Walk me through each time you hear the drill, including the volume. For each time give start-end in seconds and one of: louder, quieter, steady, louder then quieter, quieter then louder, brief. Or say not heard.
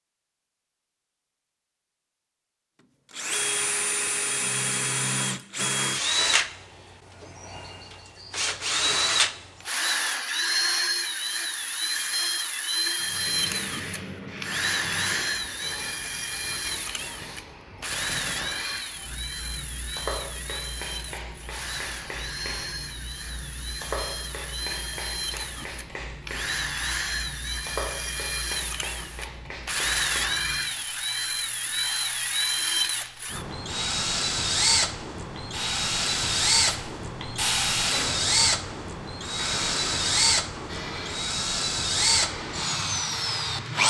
3.1-43.8 quieter then louder.